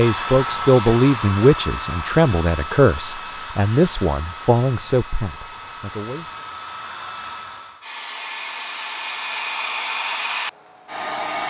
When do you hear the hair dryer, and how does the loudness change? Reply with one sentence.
You can hear the hair dryer from 0.0 to 11.4 s, getting quieter then louder.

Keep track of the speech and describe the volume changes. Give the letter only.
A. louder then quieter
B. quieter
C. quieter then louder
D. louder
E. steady
B.